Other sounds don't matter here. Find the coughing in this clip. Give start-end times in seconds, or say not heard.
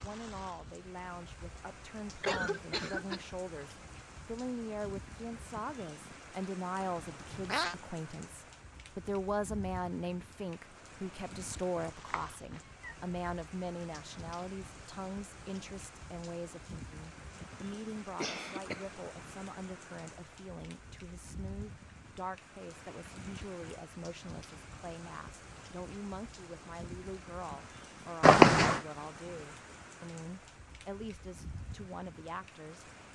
2.2-3.2, 17.4-18.9.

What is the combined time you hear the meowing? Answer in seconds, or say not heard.
2 s.